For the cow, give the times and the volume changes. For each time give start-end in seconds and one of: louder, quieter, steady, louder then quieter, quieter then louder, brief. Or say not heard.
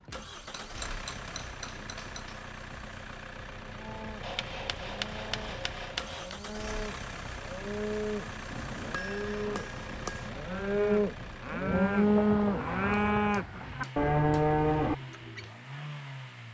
3.8-15.5 louder.